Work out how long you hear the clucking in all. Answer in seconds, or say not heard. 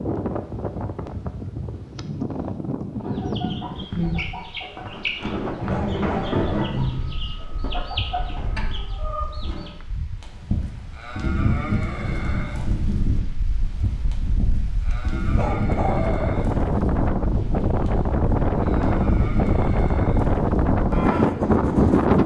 7 s.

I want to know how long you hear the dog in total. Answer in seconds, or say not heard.
3 s.